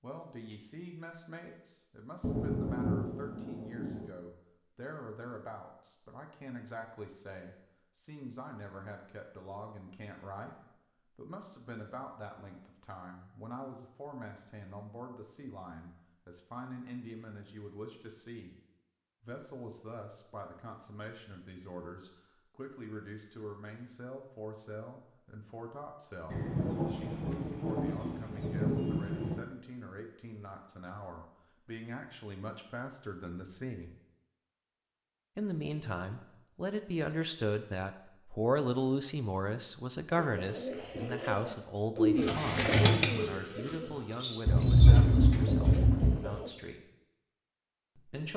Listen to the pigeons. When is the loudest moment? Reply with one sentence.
The volume of the pigeons peaks at 43 seconds.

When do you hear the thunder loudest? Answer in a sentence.
The volume of the thunder peaks at 45 seconds.